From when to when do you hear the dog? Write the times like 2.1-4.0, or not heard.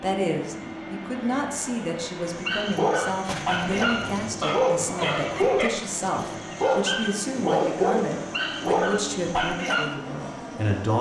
2.2-9.9.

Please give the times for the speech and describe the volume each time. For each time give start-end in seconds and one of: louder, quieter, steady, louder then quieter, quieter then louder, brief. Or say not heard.
0.0-10.9 steady.